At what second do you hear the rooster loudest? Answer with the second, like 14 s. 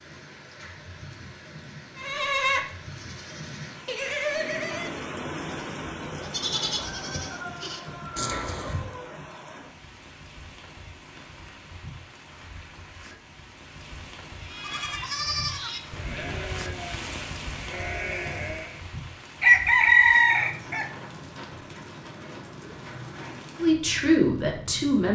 20 s.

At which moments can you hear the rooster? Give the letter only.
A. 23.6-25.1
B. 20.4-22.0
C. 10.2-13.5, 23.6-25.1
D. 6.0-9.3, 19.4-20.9
D.